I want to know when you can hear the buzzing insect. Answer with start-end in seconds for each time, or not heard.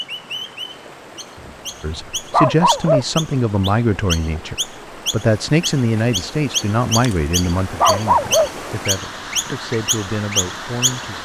not heard.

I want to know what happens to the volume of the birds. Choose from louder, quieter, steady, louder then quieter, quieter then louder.
louder.